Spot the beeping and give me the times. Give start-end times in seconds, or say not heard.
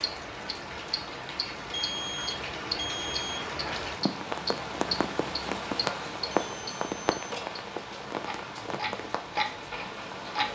1.7-3.5, 6.5-7.6.